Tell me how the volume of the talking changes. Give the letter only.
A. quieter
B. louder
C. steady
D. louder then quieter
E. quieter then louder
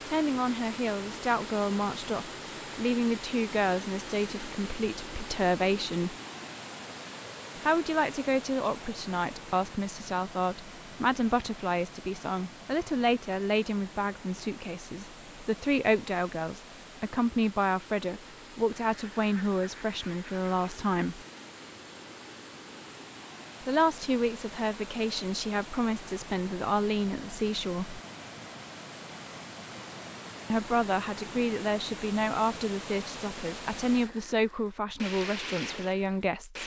C.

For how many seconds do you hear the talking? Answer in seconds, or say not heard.
30 s.